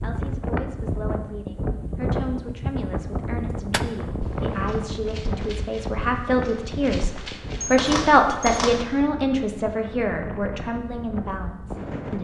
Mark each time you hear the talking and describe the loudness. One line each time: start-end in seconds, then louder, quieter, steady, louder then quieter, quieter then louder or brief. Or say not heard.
0.0-12.1 louder then quieter.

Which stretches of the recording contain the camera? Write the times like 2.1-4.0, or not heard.
7.6-8.8.